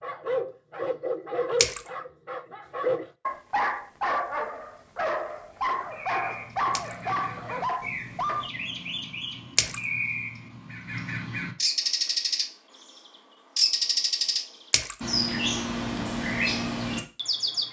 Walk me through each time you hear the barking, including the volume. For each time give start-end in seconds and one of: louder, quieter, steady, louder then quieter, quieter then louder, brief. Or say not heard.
0.0-8.5 steady.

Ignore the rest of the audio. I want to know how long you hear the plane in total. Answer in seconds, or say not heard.
not heard.